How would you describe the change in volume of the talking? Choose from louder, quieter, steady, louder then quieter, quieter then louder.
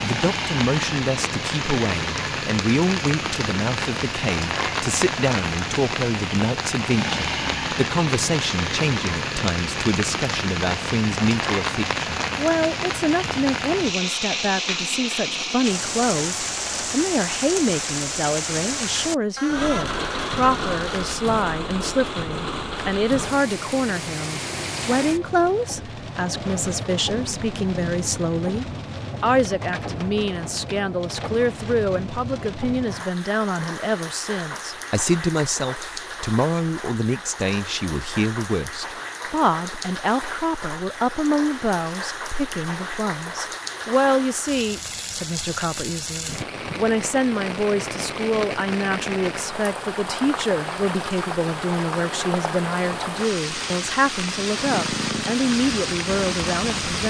steady.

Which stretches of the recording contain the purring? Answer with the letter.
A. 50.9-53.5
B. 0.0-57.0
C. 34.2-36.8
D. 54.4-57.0
D.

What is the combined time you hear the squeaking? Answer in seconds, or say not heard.
2 s.